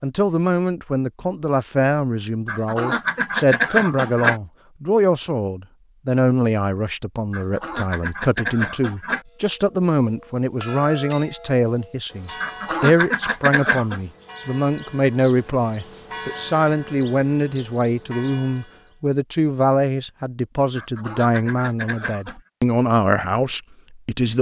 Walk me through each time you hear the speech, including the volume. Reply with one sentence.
You can hear the speech from 0.0 to 24.3 s, at a steady volume.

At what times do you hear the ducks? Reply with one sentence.
The ducks can be heard from 2.5 to 4.4 s, from 7.3 to 9.2 s, from 12.4 to 14.0 s and from 20.8 to 22.4 s.